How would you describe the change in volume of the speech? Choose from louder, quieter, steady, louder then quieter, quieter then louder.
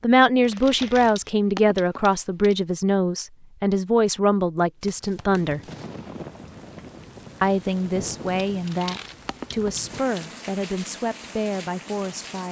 quieter.